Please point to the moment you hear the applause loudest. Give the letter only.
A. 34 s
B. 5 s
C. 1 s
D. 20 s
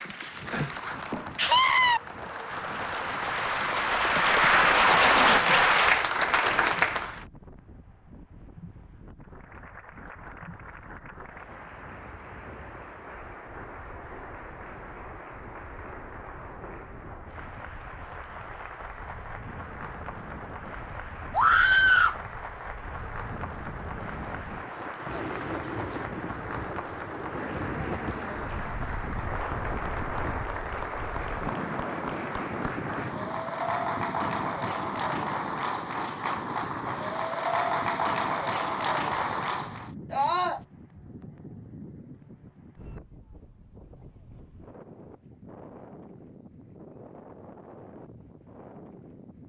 B.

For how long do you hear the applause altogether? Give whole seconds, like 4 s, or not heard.
38 s.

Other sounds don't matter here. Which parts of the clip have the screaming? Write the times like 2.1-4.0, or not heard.
1.4-2.0, 21.3-22.2, 40.1-40.6.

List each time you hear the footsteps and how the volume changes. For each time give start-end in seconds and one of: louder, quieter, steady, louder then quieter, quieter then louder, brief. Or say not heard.
not heard.